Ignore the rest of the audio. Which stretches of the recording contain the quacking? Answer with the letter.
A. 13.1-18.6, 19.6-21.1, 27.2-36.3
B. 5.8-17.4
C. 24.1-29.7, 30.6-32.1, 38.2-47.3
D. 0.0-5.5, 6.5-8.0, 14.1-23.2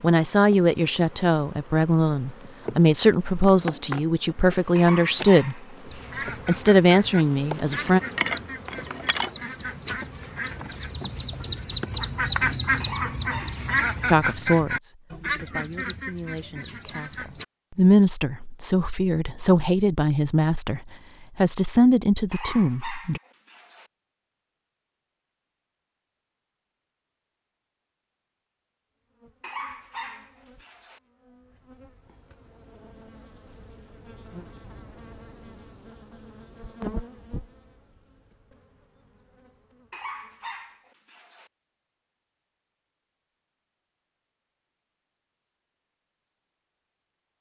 B.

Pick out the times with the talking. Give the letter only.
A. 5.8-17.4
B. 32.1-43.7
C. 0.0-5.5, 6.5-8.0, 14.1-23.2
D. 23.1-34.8
C.